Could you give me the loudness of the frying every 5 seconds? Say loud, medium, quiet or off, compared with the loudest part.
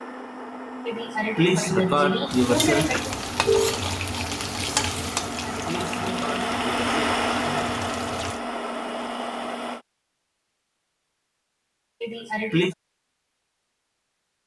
loud, medium, off.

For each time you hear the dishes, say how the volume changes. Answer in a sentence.
The dishes can't be heard in this clip.